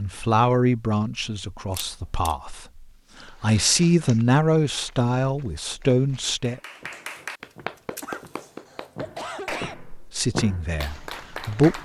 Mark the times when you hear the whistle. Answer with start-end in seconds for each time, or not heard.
not heard.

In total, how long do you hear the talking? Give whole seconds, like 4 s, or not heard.
8 s.